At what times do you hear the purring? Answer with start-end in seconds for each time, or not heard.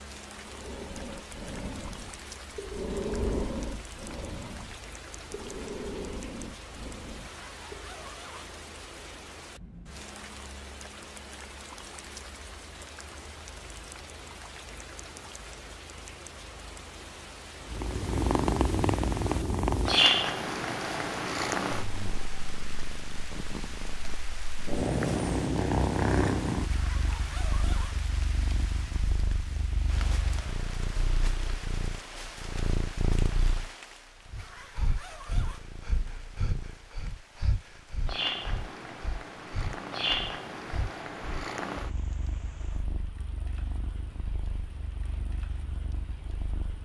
17.6-46.8.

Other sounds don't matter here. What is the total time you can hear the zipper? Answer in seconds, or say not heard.
4 s.